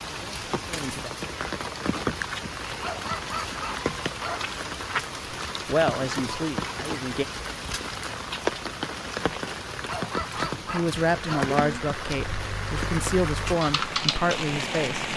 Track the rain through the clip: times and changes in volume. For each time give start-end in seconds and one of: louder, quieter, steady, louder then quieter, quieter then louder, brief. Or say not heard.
0.0-15.1 steady.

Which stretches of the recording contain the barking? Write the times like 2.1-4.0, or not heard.
2.8-4.5, 9.8-11.5.